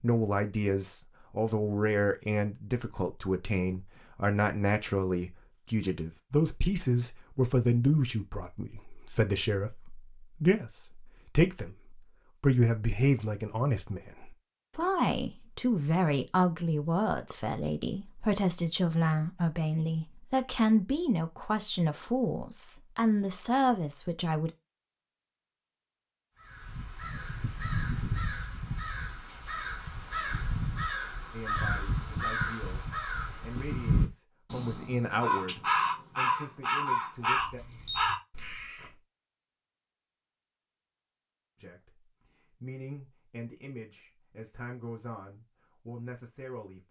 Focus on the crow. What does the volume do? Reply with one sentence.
The volume of the crow goes up.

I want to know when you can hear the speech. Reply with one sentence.
The speech can be heard from 0.0 to 24.5 s, from 31.3 to 37.6 s and from 41.6 to 46.8 s.